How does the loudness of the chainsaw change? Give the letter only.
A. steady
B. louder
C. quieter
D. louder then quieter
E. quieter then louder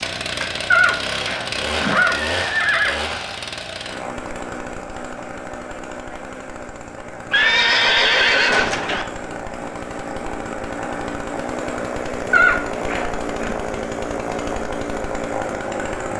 E.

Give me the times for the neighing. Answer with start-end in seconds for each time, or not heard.
0.7-3.0, 7.3-9.1, 12.3-13.6.